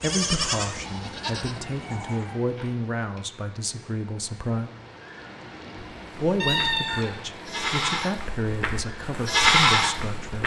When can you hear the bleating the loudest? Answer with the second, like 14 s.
10 s.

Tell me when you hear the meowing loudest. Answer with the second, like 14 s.
7 s.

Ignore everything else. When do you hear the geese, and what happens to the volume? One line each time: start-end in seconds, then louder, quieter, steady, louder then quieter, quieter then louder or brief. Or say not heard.
not heard.